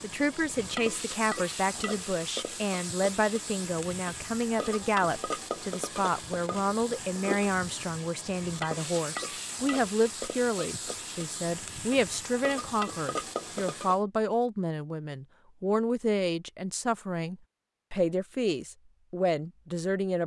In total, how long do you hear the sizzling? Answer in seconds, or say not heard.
14 s.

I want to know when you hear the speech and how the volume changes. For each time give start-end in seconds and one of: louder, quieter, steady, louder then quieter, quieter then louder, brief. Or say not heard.
0.0-20.2 steady.